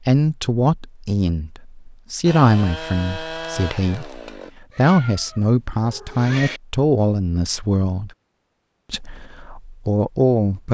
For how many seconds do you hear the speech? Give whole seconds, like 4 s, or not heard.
10 s.